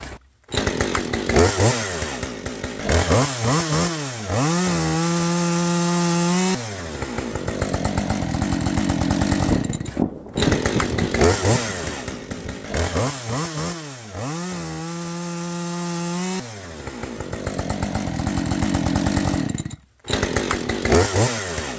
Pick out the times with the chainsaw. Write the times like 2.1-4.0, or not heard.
0.0-21.7.